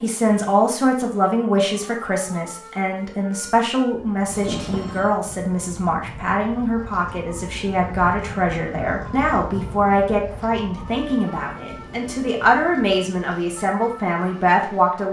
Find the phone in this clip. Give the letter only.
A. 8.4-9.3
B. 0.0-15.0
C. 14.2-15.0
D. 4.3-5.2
D.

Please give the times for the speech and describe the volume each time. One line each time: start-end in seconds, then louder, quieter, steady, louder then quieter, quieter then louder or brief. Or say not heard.
0.0-15.0 steady.